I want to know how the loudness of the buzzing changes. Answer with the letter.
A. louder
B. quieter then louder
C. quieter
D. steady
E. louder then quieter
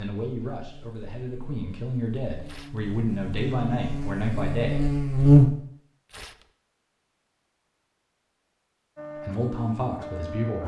A.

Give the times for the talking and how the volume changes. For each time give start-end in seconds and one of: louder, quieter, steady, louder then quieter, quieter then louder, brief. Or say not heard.
0.0-4.8 louder
9.2-10.6 brief.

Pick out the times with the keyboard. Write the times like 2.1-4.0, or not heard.
not heard.